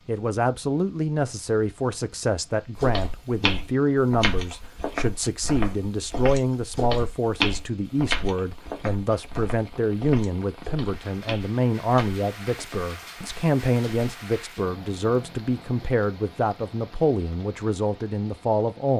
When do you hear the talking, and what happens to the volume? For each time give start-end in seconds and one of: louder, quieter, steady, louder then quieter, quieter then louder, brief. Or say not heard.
0.1-18.9 steady.